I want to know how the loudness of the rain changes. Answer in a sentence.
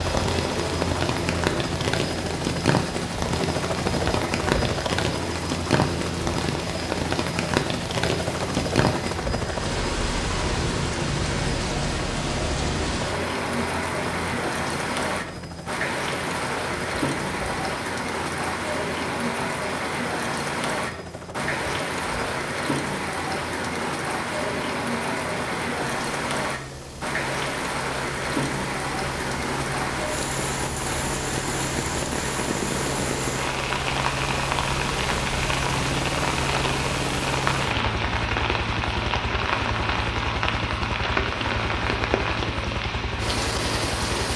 The volume of the rain stays about the same.